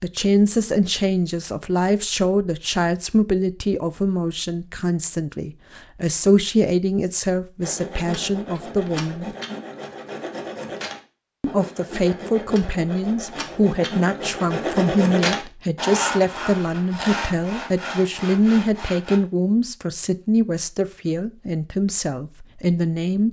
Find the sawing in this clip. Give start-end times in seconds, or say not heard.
7.6-19.2.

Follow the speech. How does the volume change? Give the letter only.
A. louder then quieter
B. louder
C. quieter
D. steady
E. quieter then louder
D.